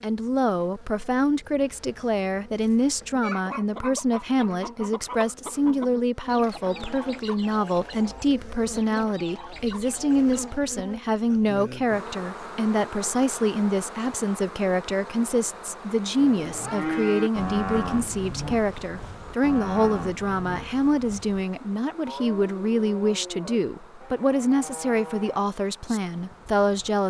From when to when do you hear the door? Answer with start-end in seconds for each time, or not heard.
not heard.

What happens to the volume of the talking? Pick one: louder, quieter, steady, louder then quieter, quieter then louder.
steady.